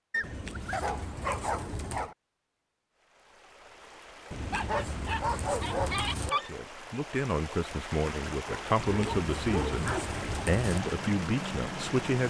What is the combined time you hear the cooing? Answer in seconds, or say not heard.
6 s.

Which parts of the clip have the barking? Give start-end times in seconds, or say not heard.
0.1-2.1, 4.5-6.5, 8.4-10.2.